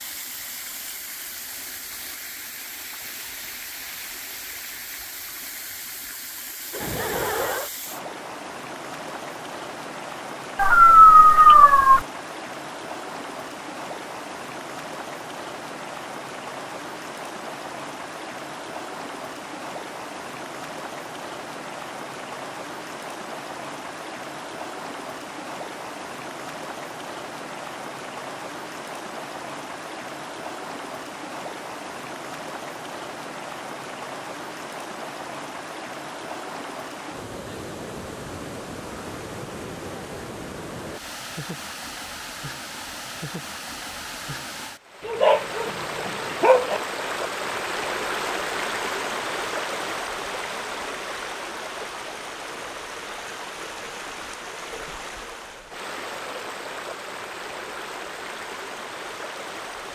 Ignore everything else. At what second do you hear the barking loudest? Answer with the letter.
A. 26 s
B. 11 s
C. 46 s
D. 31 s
B.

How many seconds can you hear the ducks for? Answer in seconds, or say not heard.
not heard.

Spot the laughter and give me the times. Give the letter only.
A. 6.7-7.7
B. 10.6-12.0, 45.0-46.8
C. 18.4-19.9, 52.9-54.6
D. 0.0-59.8
A.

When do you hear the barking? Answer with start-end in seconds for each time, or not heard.
10.6-12.0, 45.0-46.8.